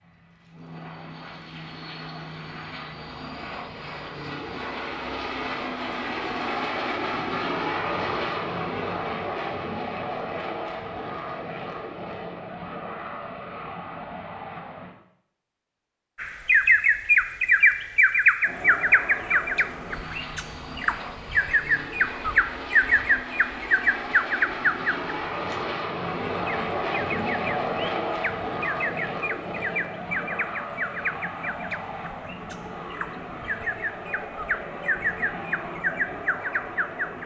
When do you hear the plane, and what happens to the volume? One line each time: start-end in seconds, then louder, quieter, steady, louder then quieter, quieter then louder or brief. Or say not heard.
0.0-14.9 louder then quieter
18.4-37.2 louder then quieter.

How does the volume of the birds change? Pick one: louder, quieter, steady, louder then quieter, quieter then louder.
quieter.